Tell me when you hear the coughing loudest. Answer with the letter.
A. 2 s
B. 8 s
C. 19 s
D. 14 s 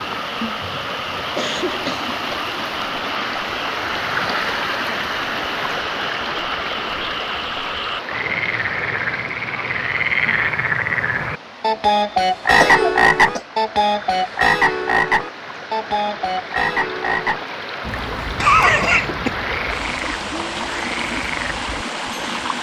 C.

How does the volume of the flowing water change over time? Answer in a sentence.
The volume of the flowing water goes down, then up.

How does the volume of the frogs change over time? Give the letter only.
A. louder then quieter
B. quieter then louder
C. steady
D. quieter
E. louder
A.